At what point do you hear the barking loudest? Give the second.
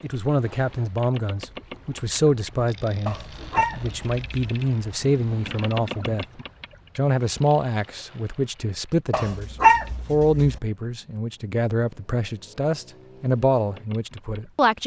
10 s.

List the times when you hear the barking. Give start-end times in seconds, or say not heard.
3.0-4.5, 9.1-10.6.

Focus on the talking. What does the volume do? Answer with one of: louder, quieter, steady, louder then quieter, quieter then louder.
steady.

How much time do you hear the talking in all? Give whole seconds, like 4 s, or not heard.
14 s.